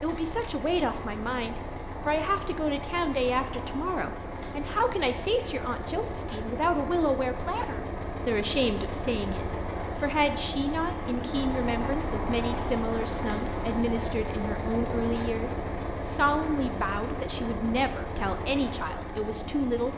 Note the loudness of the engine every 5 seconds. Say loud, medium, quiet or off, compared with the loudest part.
medium, loud, loud, loud.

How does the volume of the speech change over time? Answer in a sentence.
The loudness of the speech stays about the same.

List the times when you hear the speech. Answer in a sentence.
You can hear the speech from 0.0 to 19.9 s.